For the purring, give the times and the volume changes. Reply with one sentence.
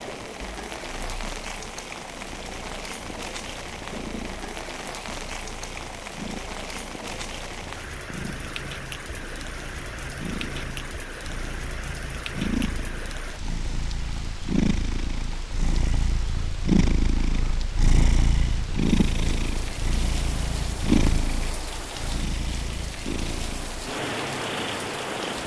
The purring can be heard from 0.0 to 25.4 s, getting louder.